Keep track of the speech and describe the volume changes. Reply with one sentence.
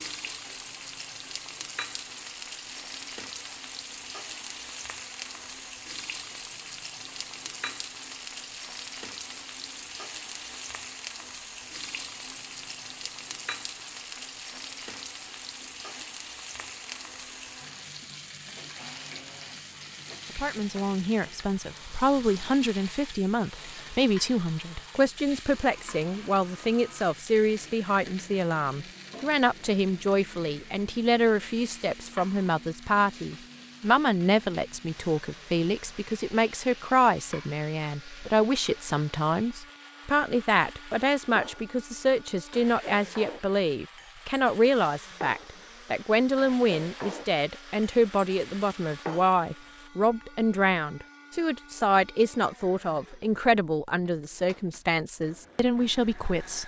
The loudness of the speech stays about the same.